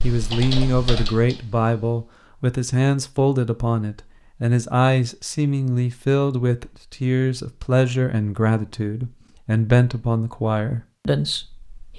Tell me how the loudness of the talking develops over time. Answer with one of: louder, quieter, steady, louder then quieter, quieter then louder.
steady.